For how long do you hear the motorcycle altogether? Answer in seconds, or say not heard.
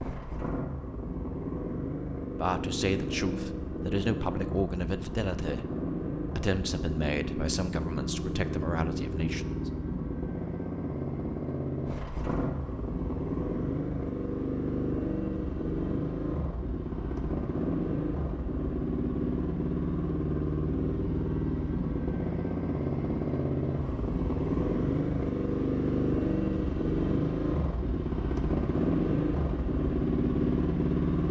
31 s.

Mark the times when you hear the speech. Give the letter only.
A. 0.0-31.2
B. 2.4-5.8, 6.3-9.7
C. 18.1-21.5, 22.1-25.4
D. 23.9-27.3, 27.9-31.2
B.